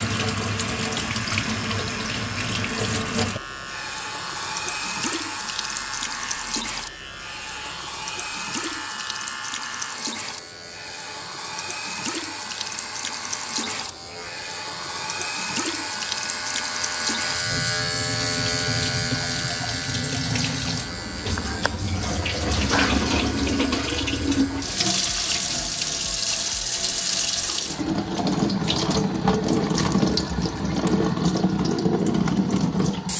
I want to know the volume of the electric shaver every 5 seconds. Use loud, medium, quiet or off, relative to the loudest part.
medium, medium, medium, loud, medium, off, off.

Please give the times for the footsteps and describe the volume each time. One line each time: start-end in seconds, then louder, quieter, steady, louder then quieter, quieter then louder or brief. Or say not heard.
not heard.